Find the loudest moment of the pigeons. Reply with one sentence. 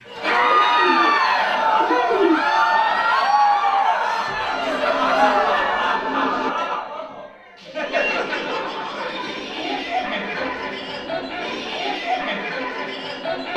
The loudest moment of the pigeons is at 2 seconds.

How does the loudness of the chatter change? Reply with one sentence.
The loudness of the chatter goes down.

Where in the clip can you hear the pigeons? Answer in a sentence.
You can hear the pigeons from 0.3 to 2.5 s, from 4.5 to 6.5 s and from 9.3 to 11.8 s.